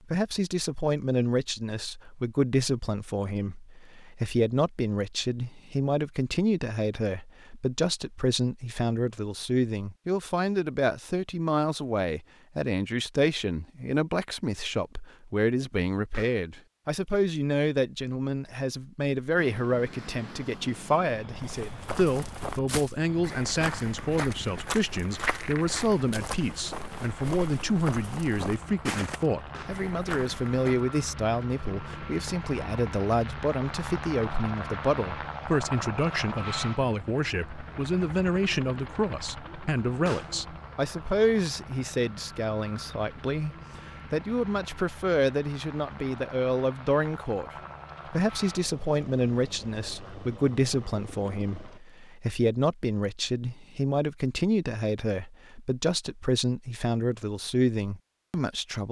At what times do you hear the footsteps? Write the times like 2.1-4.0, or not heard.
21.4-30.8.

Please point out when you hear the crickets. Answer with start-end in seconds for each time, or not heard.
not heard.